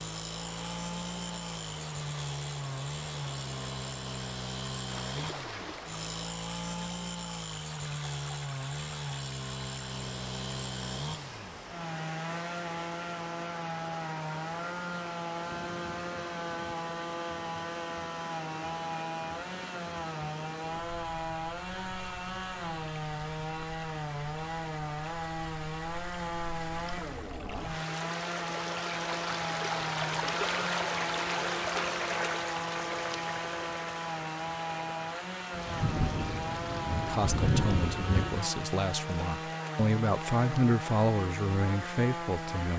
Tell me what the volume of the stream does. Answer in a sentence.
The volume of the stream goes up, then down.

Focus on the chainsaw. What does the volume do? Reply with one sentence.
The loudness of the chainsaw stays about the same.